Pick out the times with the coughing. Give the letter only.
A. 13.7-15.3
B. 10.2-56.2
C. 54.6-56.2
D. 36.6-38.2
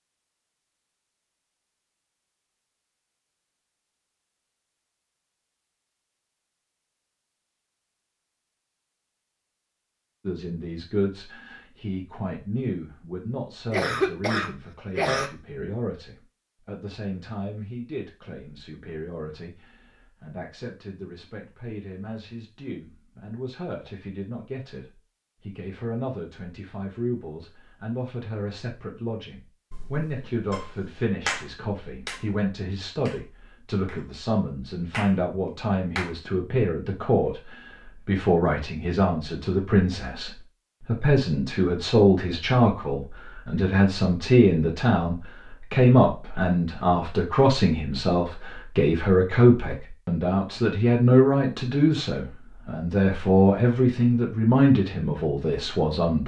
A.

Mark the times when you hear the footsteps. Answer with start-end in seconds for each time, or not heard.
not heard.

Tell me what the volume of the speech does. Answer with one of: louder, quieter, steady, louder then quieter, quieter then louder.
louder.